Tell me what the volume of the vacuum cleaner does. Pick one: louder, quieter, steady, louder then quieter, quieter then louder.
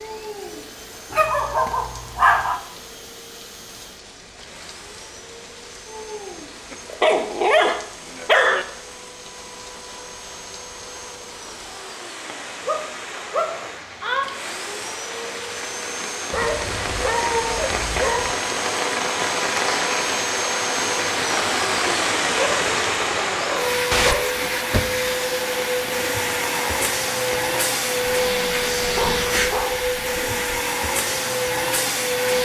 louder.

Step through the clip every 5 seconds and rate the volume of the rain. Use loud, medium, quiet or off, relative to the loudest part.
quiet, quiet, quiet, loud, loud, medium, off.